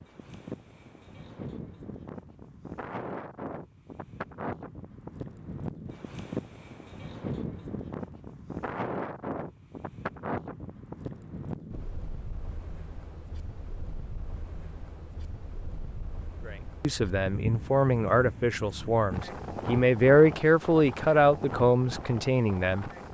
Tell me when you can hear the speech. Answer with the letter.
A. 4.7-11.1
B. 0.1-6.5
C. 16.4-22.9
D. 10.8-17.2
C.